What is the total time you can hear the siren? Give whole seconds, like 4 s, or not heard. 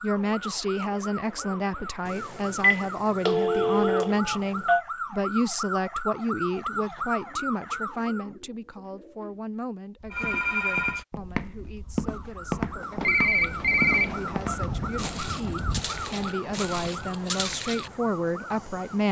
15 s.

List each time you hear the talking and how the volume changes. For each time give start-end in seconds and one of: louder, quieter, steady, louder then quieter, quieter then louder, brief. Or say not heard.
0.0-19.0 quieter then louder.